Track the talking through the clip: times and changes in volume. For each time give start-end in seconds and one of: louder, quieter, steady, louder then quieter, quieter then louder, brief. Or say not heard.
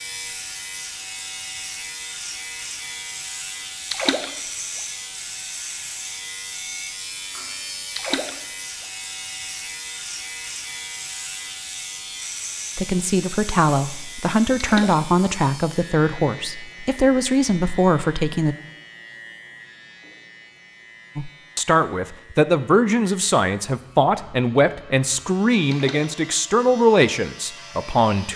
12.8-18.6 steady
21.1-28.3 steady.